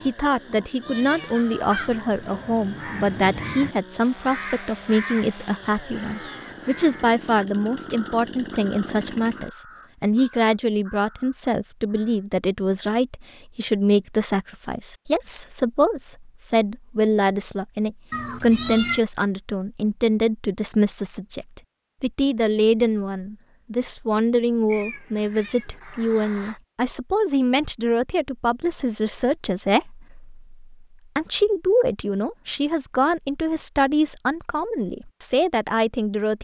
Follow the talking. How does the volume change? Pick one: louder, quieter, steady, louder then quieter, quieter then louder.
steady.